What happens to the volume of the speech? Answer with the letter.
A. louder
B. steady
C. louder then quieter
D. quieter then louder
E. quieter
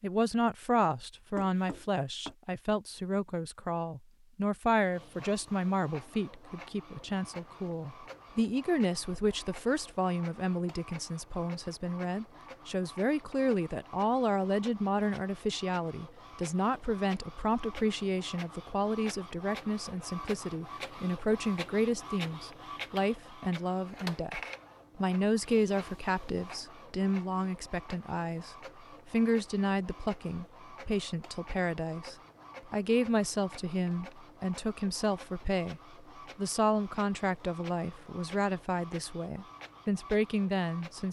B.